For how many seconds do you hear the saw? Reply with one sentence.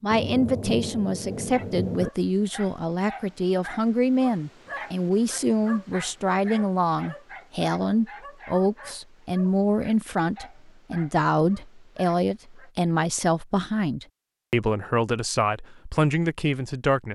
The saw can't be heard in this clip.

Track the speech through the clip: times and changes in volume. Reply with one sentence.
The speech can be heard from 0.0 to 17.1 s, at a steady volume.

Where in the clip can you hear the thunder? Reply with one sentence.
You can hear the thunder from 0.1 to 2.1 s.